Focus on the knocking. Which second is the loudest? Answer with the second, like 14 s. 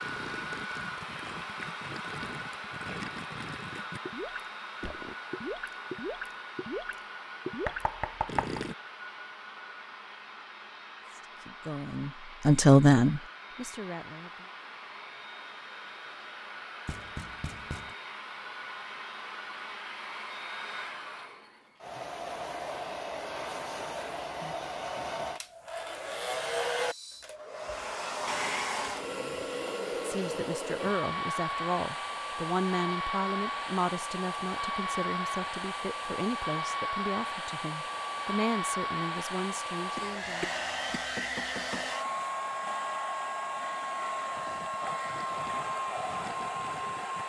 8 s.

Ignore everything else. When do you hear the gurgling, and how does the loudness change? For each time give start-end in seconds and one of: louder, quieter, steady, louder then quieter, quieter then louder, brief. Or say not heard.
0.0-8.8 louder
44.4-47.2 brief.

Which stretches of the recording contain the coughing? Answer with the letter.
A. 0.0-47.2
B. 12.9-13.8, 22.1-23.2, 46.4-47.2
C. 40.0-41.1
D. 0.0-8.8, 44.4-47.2
C.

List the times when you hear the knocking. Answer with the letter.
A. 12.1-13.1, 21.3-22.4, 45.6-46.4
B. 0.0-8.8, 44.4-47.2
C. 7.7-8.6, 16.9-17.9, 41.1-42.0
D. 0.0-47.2
C.